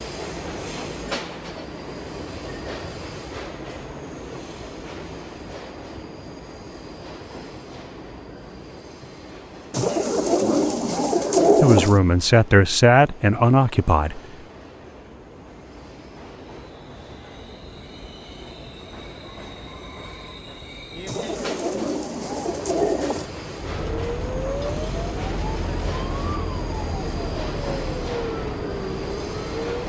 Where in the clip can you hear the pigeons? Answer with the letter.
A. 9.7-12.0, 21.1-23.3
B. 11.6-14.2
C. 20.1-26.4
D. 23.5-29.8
A.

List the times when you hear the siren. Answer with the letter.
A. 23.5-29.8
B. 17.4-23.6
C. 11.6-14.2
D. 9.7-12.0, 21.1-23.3
A.